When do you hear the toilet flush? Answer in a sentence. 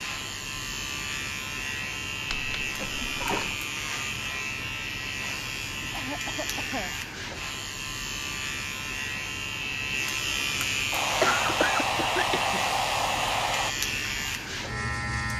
The toilet flush can be heard from 2.3 to 3.6 s.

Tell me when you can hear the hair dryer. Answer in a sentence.
The hair dryer can be heard from 10.9 to 13.8 s.